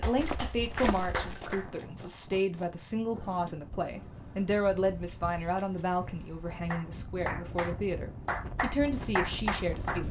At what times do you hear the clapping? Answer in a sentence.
You can hear the clapping from 0.0 to 2.2 s and from 6.5 to 10.0 s.